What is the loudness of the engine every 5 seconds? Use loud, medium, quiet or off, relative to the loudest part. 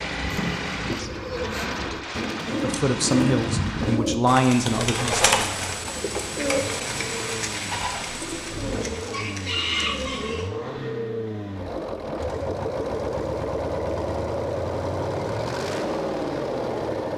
medium, medium, loud, loud.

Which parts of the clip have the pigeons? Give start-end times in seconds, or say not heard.
0.0-10.5.